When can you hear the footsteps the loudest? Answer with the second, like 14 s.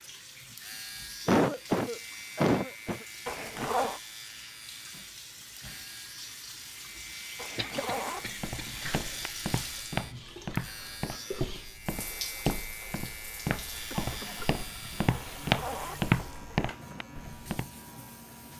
16 s.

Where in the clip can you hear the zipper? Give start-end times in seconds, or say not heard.
3.2-4.0, 7.3-9.2, 15.1-16.9.